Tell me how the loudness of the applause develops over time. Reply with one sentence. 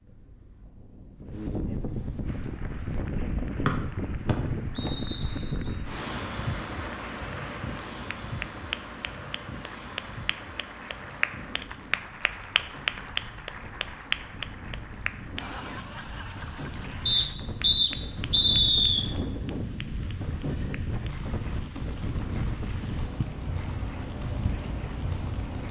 The loudness of the applause goes up, then down.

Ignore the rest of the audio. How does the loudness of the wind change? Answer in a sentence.
The loudness of the wind goes down, then up.